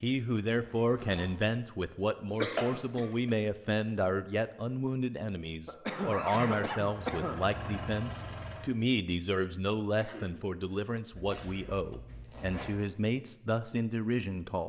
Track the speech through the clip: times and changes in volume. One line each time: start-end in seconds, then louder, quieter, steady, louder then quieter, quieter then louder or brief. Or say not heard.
0.0-14.6 steady.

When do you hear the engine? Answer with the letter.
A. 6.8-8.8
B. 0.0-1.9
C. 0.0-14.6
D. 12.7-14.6
A.